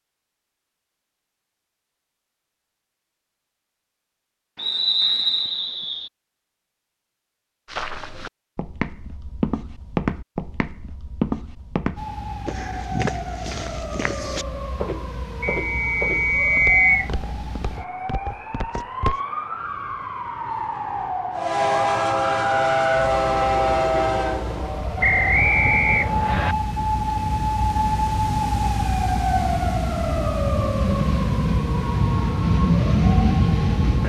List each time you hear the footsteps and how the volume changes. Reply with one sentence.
The footsteps can be heard from 7.7 to 19.2 s, getting quieter.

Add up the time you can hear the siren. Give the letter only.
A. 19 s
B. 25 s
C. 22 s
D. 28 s
C.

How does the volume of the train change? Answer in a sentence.
The loudness of the train goes down, then up.